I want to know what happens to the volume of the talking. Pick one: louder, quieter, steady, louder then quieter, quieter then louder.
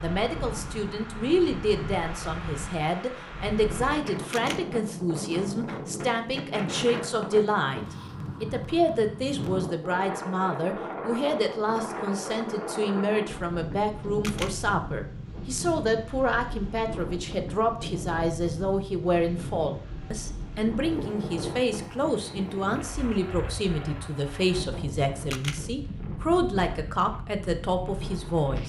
steady.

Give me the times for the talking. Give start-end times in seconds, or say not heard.
0.0-28.6.